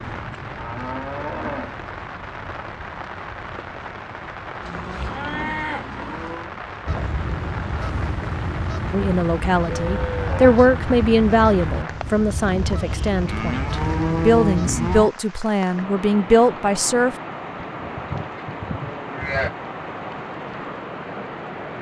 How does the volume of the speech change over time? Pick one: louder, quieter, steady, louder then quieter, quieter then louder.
quieter then louder.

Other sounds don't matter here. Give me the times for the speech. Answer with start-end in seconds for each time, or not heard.
8.9-17.1.